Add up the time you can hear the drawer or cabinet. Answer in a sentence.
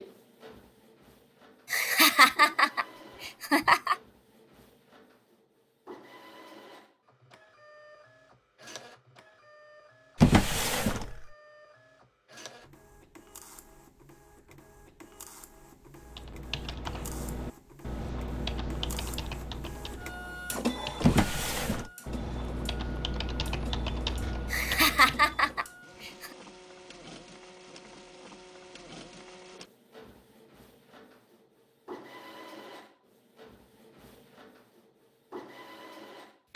The drawer or cabinet can be heard for 2 seconds in total.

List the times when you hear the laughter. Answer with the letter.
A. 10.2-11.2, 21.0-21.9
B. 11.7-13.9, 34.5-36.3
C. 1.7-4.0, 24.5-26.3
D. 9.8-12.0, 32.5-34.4
C.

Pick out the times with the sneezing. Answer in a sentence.
The sneezing can't be heard in this clip.